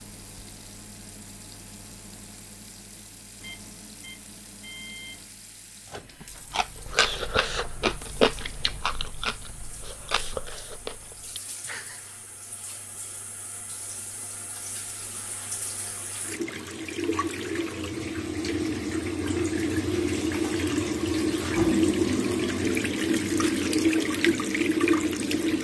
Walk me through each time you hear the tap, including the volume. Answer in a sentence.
The tap can be heard from 0.0 to 25.5 s, getting louder.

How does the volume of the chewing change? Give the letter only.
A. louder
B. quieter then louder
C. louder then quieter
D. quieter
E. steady
D.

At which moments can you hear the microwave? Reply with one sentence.
You can hear the microwave from 0.0 to 6.7 s.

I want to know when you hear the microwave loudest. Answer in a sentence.
The volume of the microwave peaks at 5 seconds.